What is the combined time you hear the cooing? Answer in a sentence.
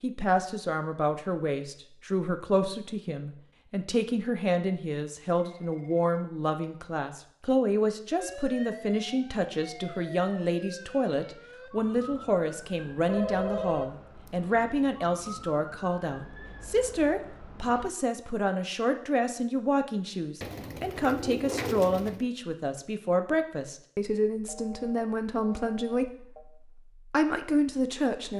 You can hear the cooing for 2 seconds altogether.